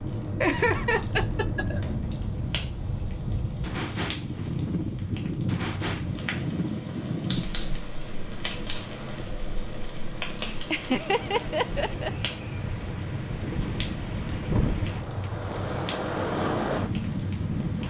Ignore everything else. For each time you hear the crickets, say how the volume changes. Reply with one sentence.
You can't hear the crickets here.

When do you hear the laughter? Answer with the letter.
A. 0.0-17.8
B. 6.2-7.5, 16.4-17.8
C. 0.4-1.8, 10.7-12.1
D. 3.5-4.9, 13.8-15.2
C.